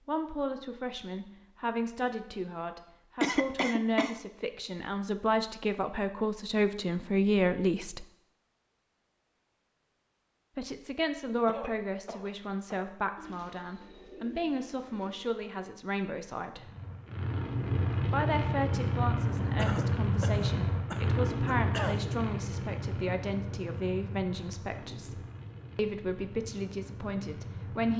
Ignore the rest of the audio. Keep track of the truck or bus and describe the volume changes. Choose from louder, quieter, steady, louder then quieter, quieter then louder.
quieter.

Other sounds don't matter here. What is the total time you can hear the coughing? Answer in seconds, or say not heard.
5 s.